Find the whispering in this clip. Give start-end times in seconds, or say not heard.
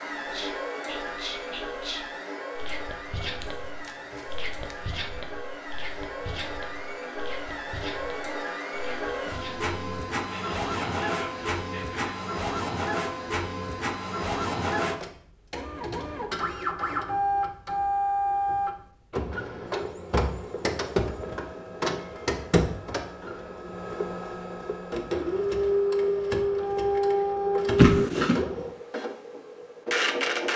0.1-12.1.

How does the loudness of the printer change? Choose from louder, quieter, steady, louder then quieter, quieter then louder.
louder.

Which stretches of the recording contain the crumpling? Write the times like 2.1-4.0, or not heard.
3.4-5.0, 27.8-28.4.